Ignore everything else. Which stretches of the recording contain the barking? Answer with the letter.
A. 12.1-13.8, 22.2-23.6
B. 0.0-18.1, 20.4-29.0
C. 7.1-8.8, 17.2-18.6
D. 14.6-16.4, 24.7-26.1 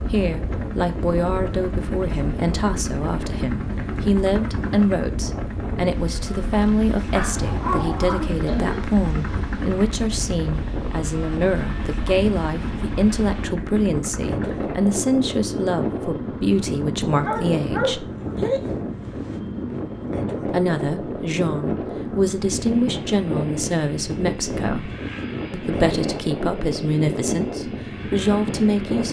C.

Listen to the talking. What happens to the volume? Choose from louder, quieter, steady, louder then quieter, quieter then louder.
steady.